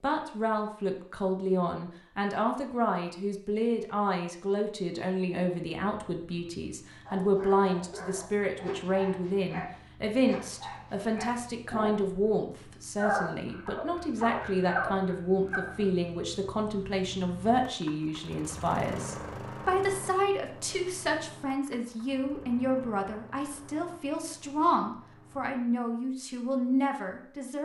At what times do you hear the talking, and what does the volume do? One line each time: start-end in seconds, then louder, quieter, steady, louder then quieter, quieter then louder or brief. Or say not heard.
0.0-27.5 steady.